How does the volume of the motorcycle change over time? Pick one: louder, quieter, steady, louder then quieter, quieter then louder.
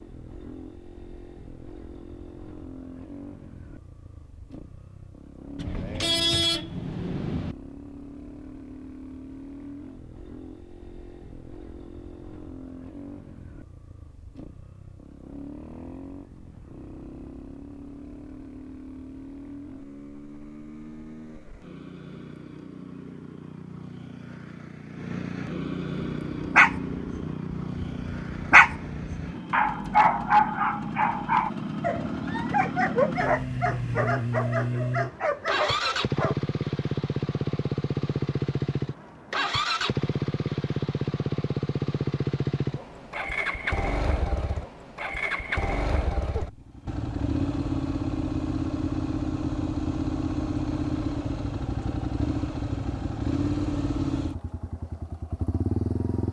louder.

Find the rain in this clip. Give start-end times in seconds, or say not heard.
not heard.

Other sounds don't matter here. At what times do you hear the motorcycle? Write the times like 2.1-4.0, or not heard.
0.0-56.2.